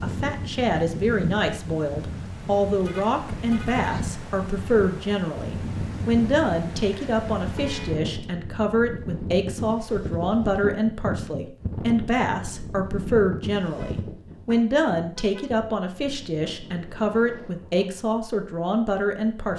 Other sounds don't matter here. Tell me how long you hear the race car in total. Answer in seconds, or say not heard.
not heard.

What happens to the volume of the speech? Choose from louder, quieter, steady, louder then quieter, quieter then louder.
steady.